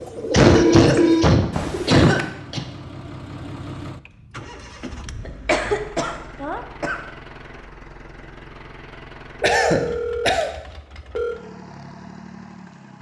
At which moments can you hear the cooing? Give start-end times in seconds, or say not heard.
0.0-2.3.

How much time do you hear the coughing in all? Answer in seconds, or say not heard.
5 s.